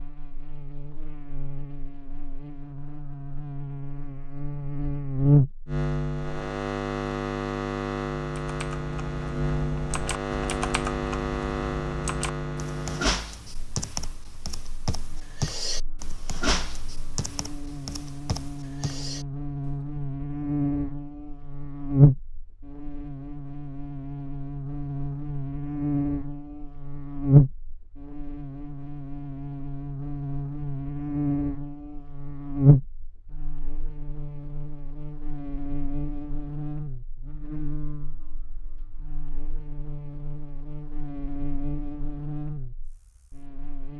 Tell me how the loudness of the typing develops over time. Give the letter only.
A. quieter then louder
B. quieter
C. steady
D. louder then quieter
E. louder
D.